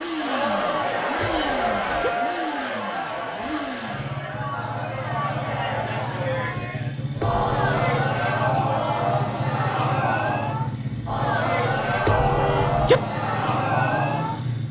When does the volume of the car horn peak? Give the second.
13 s.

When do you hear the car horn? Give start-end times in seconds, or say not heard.
1.1-2.1, 7.2-7.8, 12.1-13.0.